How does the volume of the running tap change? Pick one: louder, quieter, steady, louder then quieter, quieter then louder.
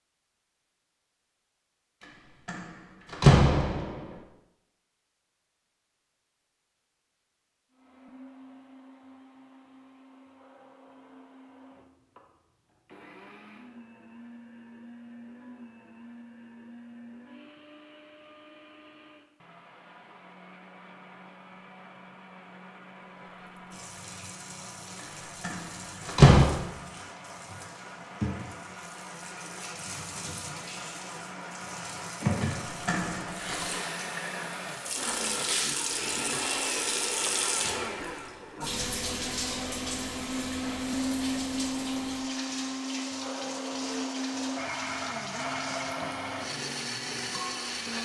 louder then quieter.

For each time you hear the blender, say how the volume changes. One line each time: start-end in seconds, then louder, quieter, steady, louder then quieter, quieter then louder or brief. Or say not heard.
7.7-47.9 louder.